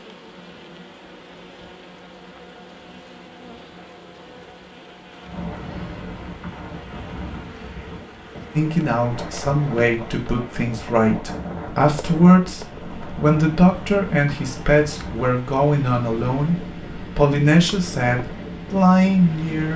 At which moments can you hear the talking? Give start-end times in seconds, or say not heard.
8.6-19.7.